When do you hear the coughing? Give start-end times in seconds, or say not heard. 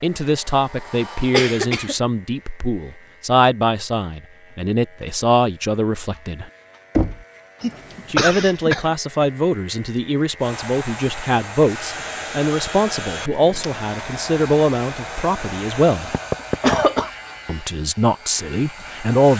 1.3-1.9, 7.6-8.9, 16.6-17.1.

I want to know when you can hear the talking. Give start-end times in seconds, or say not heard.
0.0-6.5, 8.1-16.1, 17.4-19.3.